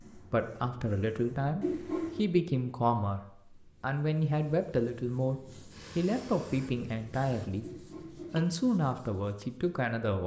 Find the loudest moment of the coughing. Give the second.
2 s.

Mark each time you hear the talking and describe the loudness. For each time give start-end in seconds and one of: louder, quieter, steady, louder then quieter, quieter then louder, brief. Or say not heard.
0.1-10.2 steady.